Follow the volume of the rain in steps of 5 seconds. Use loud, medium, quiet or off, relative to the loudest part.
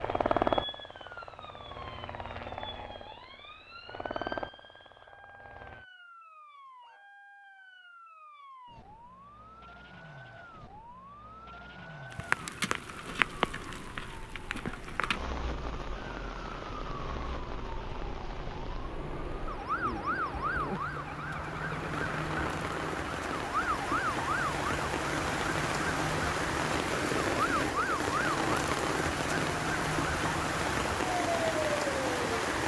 off, off, loud, medium, medium, loud, loud.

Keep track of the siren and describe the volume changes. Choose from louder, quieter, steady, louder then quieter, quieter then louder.
louder.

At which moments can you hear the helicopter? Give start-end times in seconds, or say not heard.
0.0-5.8.